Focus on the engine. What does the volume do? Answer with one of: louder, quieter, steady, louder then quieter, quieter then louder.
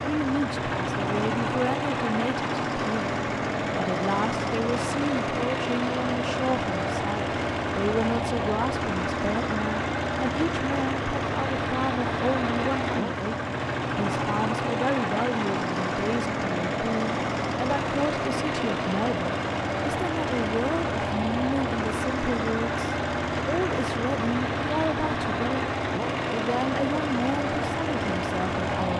steady.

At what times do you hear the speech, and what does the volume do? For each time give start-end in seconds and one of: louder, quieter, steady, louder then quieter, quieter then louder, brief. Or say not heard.
0.1-25.7 steady
26.3-28.9 brief.